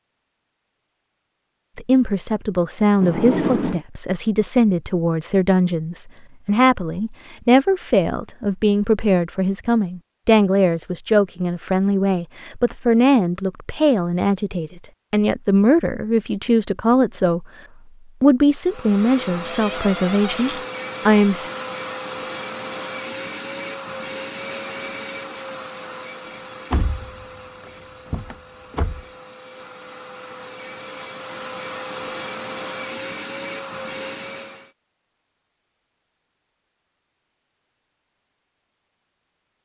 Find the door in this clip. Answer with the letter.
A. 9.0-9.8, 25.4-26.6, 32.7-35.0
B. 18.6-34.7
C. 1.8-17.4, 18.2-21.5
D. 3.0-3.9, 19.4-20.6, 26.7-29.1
D.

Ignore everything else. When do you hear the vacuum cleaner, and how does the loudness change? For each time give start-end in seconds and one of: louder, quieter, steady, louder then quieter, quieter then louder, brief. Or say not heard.
18.6-34.7 quieter then louder.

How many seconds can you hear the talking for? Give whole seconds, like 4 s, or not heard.
19 s.